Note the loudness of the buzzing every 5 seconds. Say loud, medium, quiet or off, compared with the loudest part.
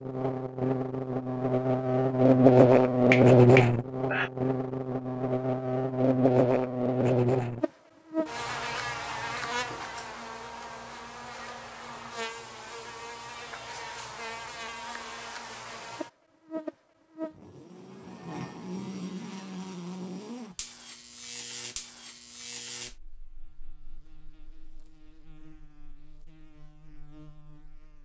loud, medium, quiet, quiet, quiet, quiet.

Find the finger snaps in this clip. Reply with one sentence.
The finger snaps can be heard from 3.1 to 4.3 s.